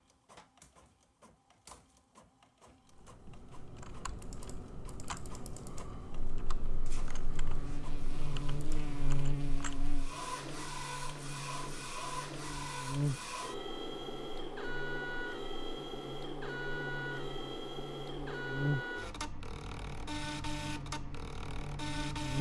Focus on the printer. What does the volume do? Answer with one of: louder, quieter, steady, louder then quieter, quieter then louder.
louder.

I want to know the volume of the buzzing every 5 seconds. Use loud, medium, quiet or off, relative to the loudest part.
off, loud, loud, loud, loud.